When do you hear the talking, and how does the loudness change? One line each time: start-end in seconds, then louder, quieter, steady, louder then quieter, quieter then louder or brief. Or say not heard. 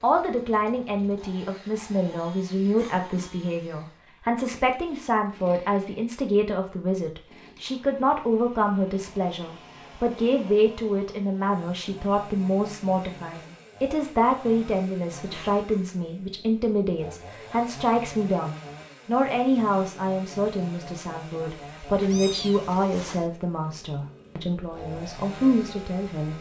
0.0-26.3 steady.